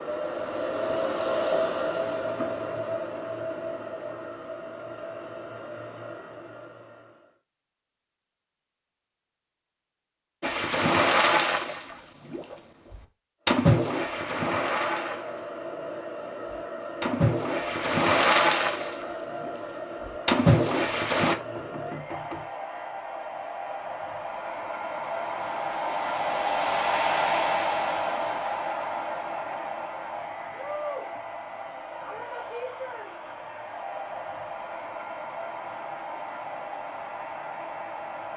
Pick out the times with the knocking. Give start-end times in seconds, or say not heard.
0.6-1.4, 21.6-22.5.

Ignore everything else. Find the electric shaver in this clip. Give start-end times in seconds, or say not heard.
not heard.